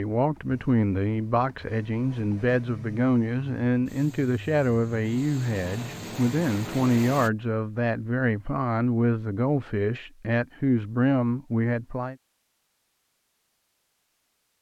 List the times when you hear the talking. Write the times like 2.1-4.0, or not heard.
0.0-12.2.